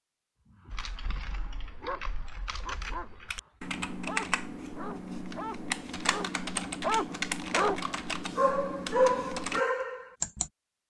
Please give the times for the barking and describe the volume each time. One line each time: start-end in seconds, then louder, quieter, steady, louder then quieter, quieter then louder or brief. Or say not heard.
0.5-10.4 louder.